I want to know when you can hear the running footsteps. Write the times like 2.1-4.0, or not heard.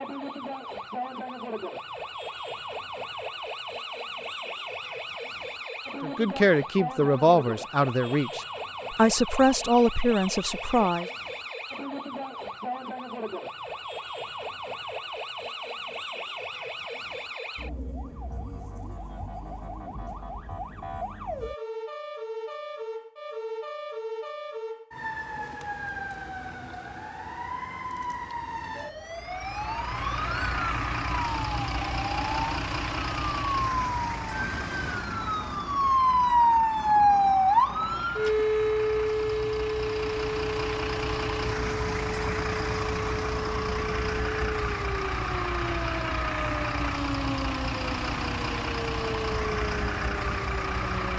not heard.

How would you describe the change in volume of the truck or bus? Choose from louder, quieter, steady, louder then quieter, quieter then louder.
quieter then louder.